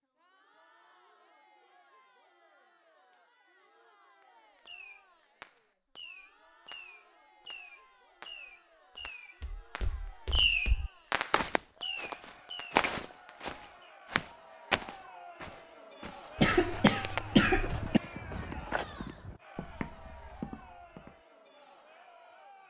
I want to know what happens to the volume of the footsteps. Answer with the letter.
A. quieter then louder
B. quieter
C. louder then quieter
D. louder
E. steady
C.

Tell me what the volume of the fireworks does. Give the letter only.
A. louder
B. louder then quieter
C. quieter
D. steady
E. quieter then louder
B.